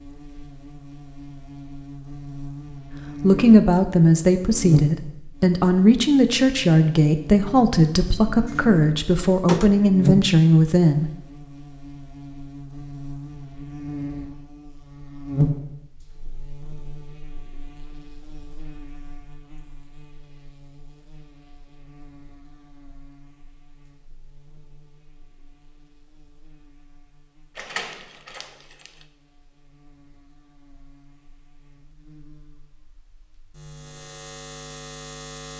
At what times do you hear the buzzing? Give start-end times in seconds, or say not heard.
0.0-35.5.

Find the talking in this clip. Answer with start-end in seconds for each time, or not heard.
3.2-11.1.